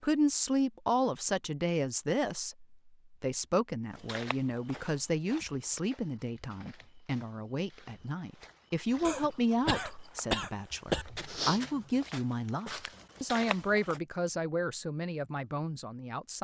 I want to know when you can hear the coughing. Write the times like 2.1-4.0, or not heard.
9.1-11.1.